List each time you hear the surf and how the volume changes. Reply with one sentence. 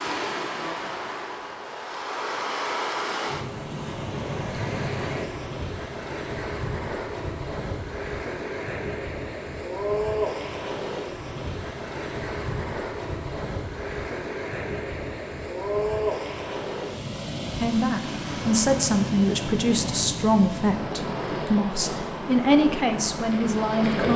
You can hear the surf from 0.0 to 24.1 s, at a steady volume.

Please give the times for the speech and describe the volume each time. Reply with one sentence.
You can hear the speech from 17.6 to 24.1 s, at a steady volume.